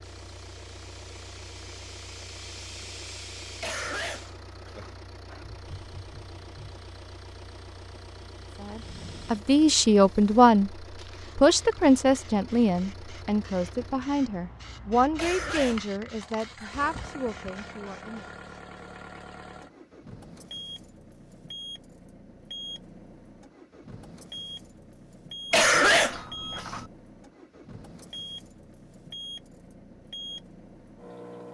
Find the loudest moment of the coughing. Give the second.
26 s.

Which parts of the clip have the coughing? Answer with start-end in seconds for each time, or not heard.
3.6-5.0, 15.2-15.9, 25.5-26.9.